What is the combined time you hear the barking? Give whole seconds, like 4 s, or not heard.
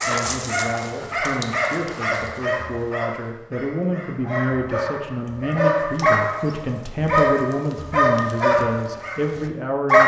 10 s.